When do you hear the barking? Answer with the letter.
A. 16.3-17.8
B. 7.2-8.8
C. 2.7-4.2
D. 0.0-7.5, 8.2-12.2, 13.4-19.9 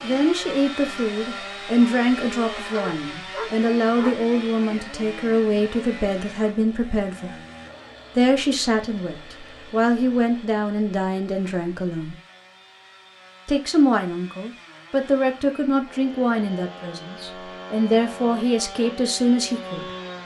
C.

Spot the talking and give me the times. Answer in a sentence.
The talking can be heard from 0.0 to 7.5 s, from 8.2 to 12.2 s and from 13.4 to 19.9 s.